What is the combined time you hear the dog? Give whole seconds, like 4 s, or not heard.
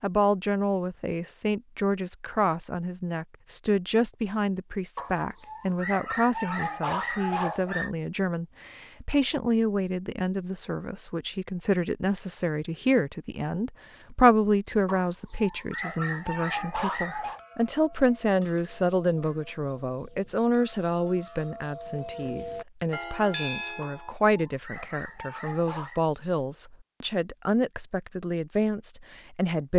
8 s.